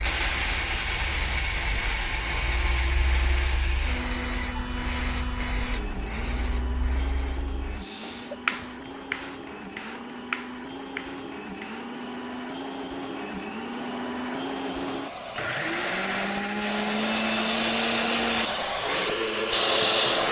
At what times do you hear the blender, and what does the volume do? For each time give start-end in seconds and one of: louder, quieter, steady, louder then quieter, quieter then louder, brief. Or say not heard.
0.0-20.2 quieter then louder.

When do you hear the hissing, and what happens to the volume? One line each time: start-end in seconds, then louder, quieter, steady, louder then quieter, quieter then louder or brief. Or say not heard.
0.0-20.2 quieter then louder.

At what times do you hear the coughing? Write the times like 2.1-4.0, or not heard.
7.8-8.8.